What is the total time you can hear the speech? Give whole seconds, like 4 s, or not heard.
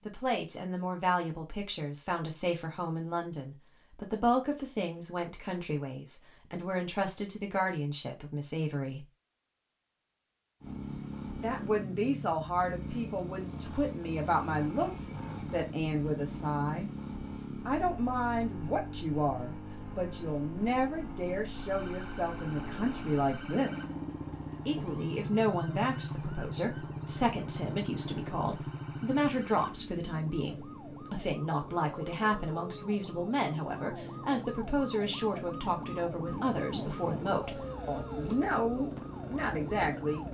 36 s.